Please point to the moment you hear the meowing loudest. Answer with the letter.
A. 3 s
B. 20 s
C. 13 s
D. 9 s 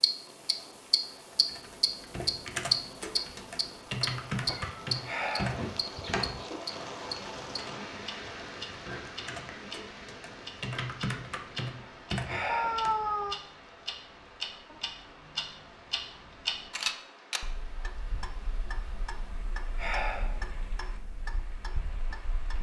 C.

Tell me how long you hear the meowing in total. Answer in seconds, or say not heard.
3 s.